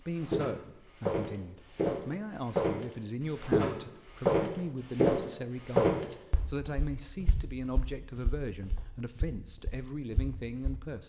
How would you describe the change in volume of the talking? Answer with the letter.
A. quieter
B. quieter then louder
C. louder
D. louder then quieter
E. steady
E.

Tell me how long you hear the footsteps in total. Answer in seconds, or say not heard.
11 s.